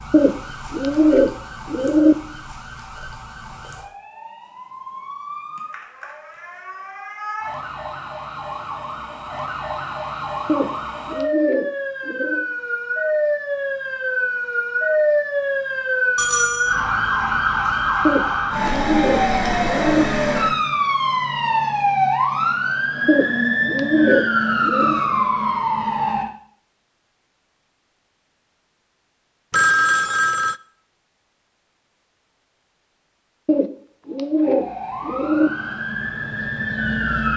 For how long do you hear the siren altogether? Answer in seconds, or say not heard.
29 s.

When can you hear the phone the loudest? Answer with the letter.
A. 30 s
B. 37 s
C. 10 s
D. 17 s
A.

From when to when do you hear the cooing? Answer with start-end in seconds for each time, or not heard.
0.1-2.1, 10.4-12.4, 18.1-20.1, 23.1-25.0, 33.5-35.5.